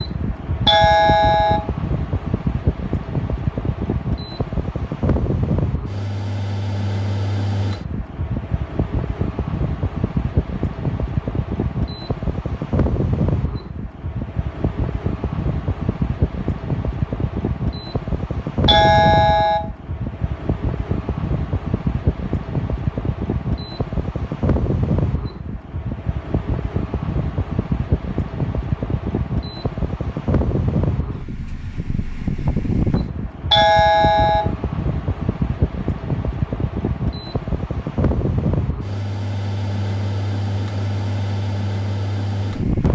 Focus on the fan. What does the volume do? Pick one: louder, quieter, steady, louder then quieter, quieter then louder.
steady.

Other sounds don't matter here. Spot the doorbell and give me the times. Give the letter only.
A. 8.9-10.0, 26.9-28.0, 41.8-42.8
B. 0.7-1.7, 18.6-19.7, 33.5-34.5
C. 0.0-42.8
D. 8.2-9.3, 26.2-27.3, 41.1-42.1
B.